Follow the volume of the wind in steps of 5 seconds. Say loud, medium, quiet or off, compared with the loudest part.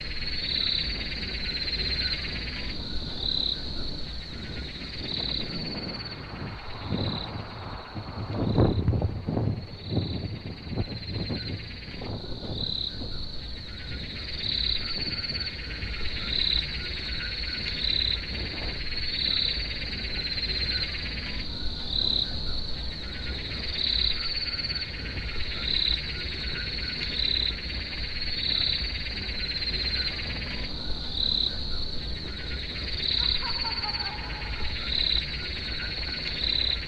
quiet, loud, medium, quiet, quiet, quiet, quiet, quiet.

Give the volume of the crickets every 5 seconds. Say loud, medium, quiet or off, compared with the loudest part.
loud, medium, medium, loud, loud, loud, loud, loud.